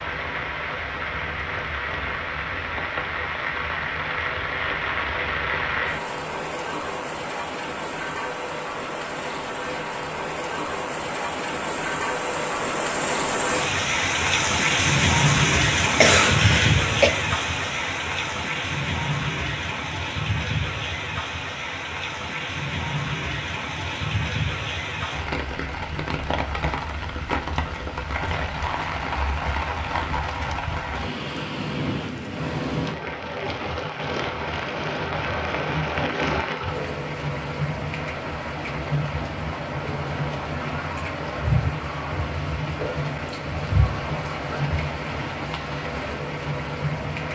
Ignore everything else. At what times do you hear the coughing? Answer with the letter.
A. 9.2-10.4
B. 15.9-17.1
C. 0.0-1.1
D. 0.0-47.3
B.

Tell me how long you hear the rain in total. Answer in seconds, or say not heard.
47 s.